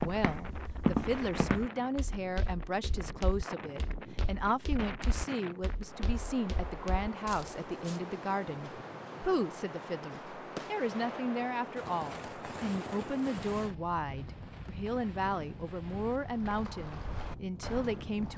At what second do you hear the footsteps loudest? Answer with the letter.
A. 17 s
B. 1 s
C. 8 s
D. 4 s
B.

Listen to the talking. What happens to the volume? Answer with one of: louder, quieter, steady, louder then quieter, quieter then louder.
steady.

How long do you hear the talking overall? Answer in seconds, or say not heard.
18 s.